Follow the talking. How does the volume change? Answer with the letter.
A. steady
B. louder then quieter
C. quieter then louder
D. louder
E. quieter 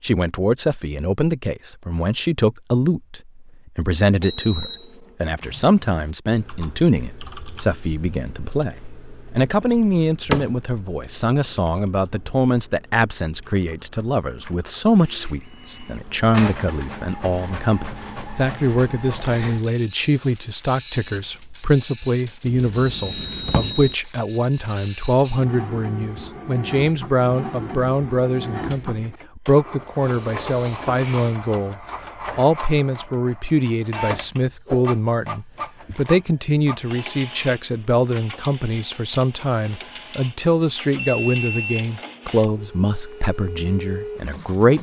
A.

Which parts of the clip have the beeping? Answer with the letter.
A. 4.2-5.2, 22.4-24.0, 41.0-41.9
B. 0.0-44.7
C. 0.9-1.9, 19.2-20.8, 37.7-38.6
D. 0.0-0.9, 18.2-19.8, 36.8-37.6
A.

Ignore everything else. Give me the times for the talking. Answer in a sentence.
The talking can be heard from 0.0 to 44.7 s.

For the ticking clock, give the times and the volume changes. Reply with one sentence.
The ticking clock can't be heard in this clip.